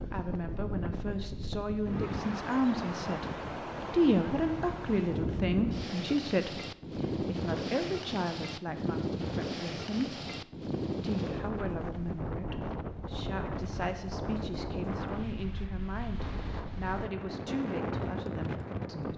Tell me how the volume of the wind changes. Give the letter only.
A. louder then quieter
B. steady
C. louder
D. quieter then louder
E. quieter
B.